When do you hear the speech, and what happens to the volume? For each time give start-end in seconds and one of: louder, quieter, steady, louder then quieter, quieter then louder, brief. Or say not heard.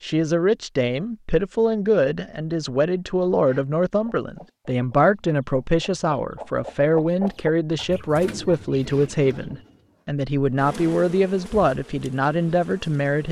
0.0-13.2 steady.